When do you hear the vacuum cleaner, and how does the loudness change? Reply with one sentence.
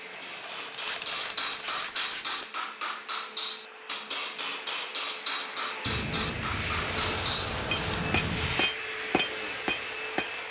You can hear the vacuum cleaner from 0.0 to 10.4 s, getting louder.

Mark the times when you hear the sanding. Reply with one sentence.
The sanding can be heard from 0.8 to 2.5 s and from 5.8 to 8.7 s.